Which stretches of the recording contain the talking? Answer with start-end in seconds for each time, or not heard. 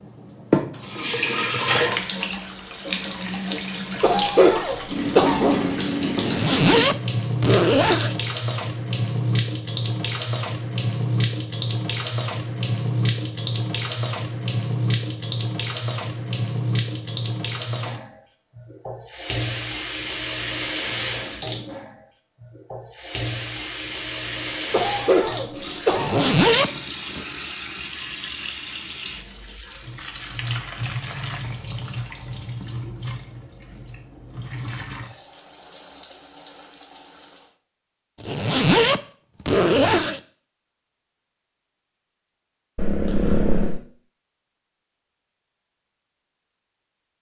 not heard.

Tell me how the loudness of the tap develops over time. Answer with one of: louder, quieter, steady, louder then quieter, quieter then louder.
quieter.